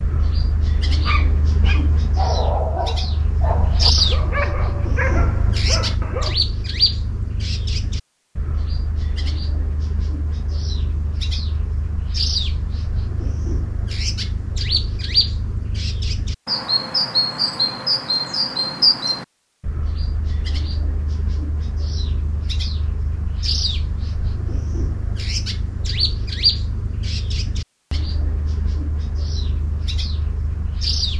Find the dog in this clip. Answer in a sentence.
You can hear the dog from 1.0 to 6.3 s.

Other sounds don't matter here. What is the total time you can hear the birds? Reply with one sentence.
You can hear the birds for 31 seconds altogether.